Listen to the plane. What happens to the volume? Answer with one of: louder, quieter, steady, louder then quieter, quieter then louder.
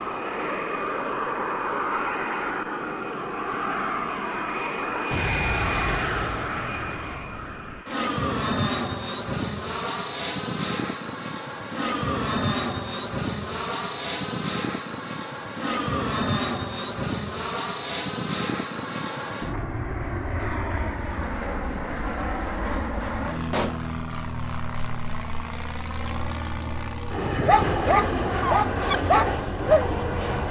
steady.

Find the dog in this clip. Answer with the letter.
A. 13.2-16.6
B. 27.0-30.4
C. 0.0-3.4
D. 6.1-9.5
B.